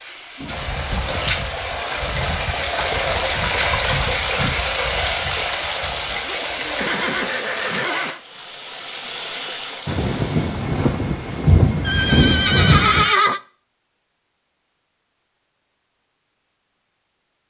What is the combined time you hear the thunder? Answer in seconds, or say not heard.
3 s.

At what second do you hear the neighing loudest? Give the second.
13 s.